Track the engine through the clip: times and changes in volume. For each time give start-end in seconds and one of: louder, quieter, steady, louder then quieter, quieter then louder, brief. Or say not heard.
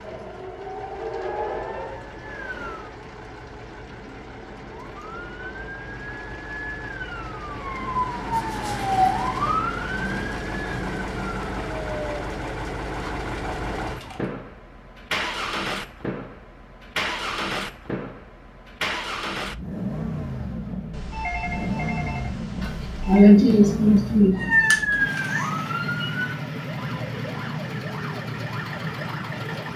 0.0-29.7 louder.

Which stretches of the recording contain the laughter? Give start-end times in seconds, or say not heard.
22.6-24.4.